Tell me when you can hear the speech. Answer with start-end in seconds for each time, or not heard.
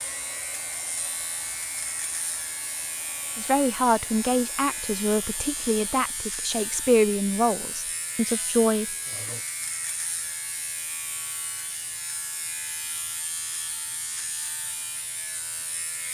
3.4-8.8.